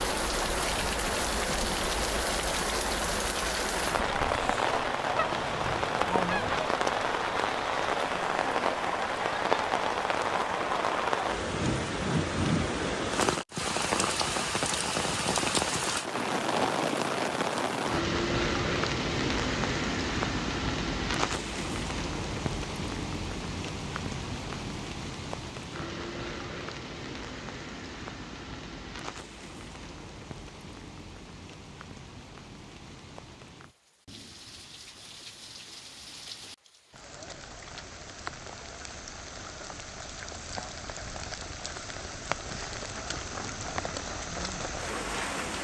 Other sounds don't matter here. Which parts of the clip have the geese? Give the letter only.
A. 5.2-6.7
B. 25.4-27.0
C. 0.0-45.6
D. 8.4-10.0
A.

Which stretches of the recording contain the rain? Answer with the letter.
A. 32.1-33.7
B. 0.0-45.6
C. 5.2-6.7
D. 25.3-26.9
B.